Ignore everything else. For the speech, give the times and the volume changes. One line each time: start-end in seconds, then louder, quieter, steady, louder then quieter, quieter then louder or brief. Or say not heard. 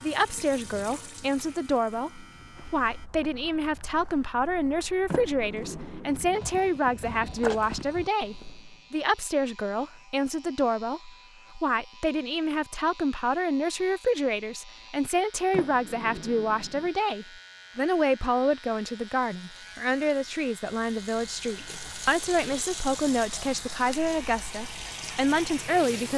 0.0-26.1 steady.